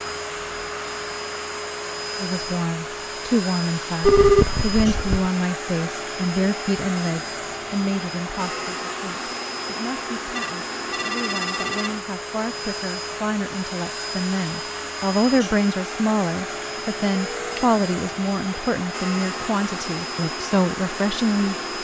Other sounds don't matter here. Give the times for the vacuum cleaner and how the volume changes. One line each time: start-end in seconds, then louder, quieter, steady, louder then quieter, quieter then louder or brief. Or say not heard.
0.0-21.7 steady.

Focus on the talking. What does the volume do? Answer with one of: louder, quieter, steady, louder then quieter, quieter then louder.
quieter then louder.